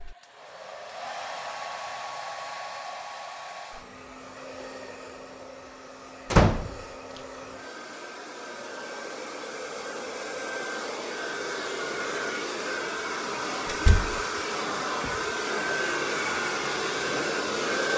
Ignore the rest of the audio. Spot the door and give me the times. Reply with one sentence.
The door can be heard from 6.3 to 6.8 s and from 13.7 to 14.2 s.